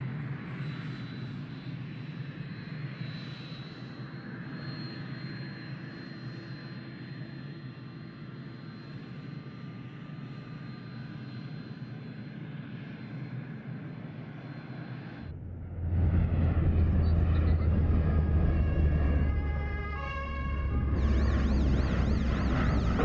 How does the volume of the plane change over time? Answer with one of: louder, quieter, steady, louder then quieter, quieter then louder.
louder.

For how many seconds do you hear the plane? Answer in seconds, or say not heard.
23 s.